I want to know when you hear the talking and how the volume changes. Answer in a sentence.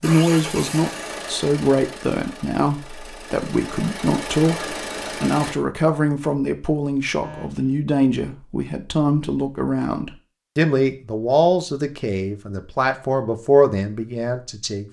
You can hear the talking from 0.0 to 14.8 s, at a steady volume.